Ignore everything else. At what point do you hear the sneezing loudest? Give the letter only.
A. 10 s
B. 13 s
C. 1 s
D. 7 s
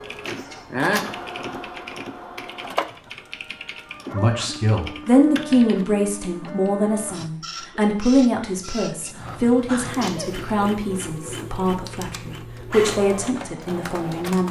C.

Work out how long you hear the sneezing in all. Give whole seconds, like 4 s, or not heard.
2 s.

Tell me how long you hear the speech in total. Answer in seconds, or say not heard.
10 s.